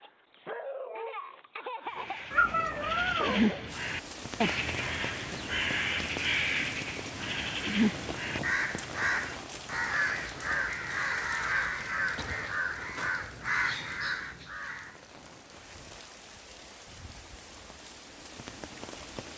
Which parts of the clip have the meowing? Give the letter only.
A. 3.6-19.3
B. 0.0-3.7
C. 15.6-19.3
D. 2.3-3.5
D.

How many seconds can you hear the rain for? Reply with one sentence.
The rain can be heard for 16 seconds in total.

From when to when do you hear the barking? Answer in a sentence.
You can hear the barking from 0.0 to 3.7 s.